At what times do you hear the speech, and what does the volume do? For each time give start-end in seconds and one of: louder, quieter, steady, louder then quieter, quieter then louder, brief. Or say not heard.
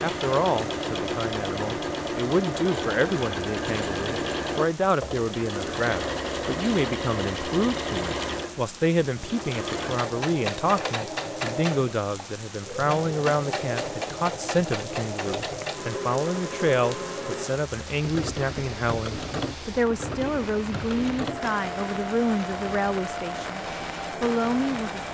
0.0-23.6 steady
24.2-25.1 brief.